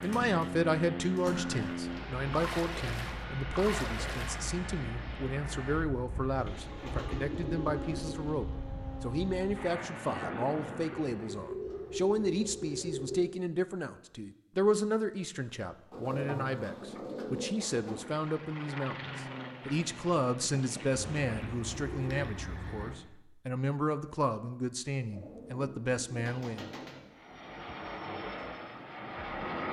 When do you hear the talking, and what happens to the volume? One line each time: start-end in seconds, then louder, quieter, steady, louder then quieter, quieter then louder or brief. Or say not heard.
0.0-26.9 steady.